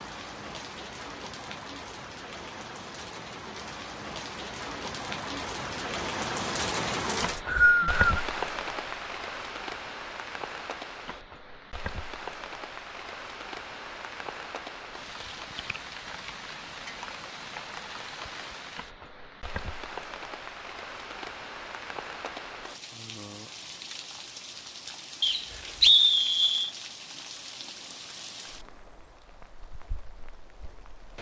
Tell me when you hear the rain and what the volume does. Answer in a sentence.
You can hear the rain from 0.0 to 31.1 s, getting quieter.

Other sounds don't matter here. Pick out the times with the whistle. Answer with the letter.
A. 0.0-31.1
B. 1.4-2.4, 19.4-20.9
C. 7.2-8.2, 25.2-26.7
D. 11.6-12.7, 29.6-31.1
C.